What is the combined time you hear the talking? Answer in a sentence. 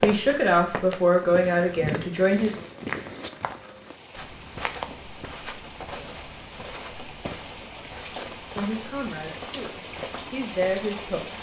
You can hear the talking for 6 seconds altogether.